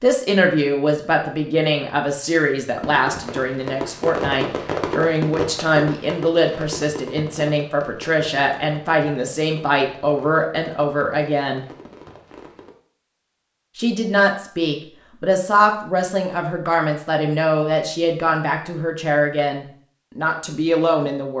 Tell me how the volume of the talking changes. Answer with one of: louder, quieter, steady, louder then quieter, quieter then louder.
steady.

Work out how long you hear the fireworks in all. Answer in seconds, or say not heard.
10 s.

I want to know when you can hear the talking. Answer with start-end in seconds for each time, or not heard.
0.0-11.7, 13.8-21.3.